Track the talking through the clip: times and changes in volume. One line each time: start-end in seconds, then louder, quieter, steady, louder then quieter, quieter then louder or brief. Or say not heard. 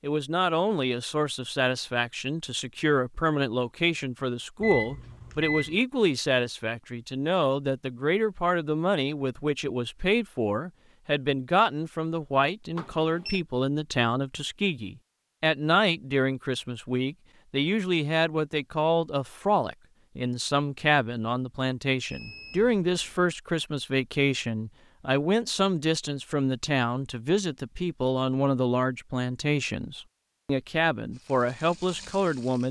0.0-32.6 steady.